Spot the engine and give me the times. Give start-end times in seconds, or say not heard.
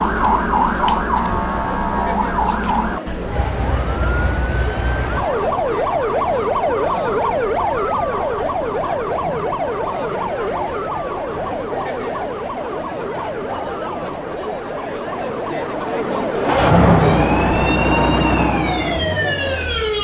16.4-19.9.